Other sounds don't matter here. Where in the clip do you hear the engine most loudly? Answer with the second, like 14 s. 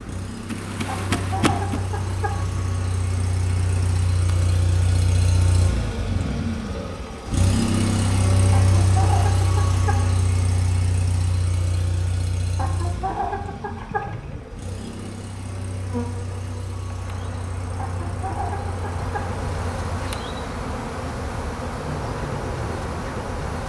8 s.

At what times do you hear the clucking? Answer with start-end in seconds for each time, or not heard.
0.8-2.6, 8.5-10.1, 12.6-14.3, 17.8-19.4.